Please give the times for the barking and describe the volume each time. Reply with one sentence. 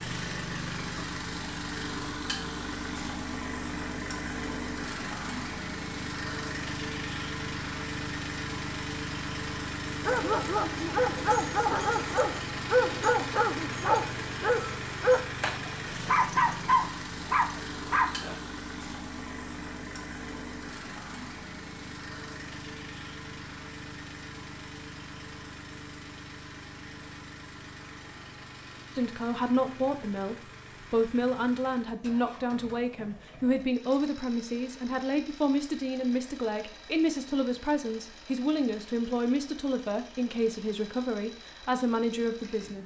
You can hear the barking from 10.0 to 18.4 s, at a steady volume.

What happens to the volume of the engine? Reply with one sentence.
The loudness of the engine goes down.